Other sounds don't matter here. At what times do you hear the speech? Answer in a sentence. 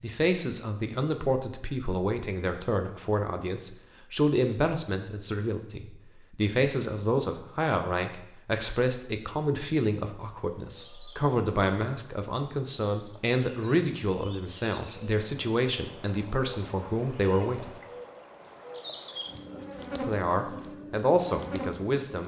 The speech can be heard from 0.0 to 17.8 s and from 20.0 to 22.2 s.